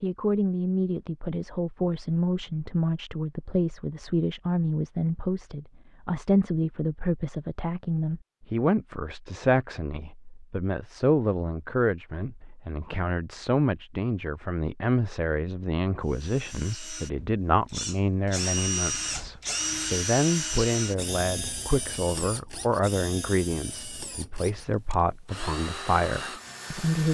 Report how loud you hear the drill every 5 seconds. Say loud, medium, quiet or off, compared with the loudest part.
off, off, off, loud, loud, medium.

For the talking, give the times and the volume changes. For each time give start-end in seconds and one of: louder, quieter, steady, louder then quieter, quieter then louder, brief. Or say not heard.
0.0-27.0 steady.